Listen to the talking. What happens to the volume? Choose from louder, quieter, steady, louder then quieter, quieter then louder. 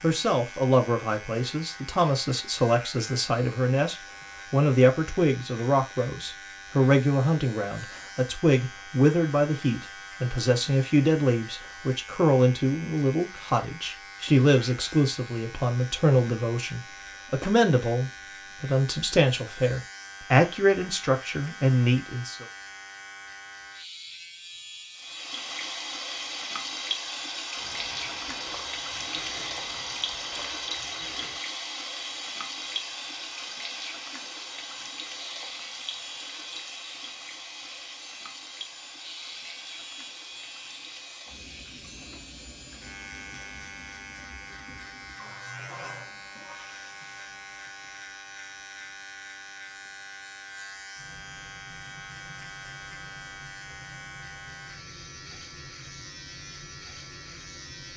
steady.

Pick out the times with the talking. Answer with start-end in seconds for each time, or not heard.
0.0-22.4.